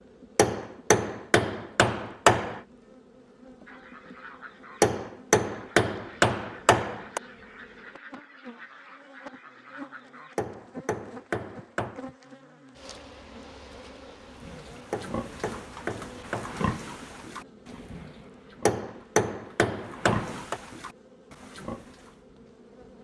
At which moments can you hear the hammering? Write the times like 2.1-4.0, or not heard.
0.3-2.6, 4.8-7.2, 10.3-12.0, 14.9-16.6, 18.6-20.6.